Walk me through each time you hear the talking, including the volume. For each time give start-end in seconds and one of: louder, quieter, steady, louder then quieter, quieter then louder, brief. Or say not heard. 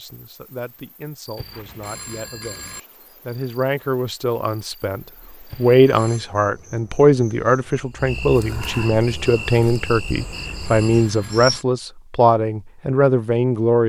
0.0-13.8 louder.